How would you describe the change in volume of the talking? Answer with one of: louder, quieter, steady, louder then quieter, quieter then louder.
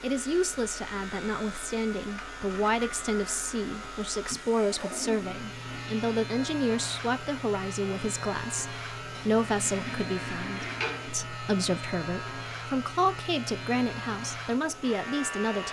steady.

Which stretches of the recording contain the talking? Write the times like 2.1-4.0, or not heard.
0.0-15.6.